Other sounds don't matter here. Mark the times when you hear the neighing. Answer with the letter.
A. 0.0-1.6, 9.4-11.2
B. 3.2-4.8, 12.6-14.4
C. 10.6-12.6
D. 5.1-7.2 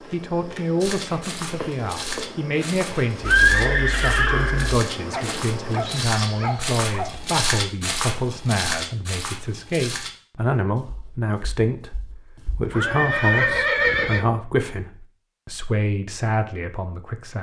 B.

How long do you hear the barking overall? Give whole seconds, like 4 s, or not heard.
2 s.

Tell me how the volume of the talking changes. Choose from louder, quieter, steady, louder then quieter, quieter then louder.
steady.